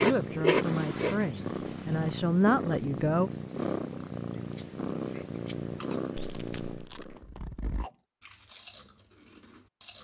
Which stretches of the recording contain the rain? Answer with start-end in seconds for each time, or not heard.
not heard.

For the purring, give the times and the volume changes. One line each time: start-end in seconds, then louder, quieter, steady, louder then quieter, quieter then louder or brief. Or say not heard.
0.0-7.2 steady.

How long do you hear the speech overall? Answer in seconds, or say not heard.
3 s.